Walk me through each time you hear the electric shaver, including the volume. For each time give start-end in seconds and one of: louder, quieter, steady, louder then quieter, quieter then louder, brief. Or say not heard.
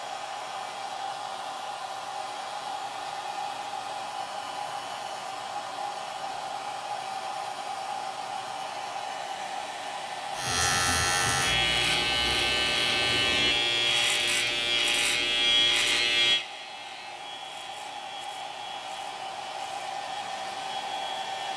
10.3-21.5 quieter.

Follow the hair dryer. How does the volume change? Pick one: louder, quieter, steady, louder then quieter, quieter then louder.
quieter then louder.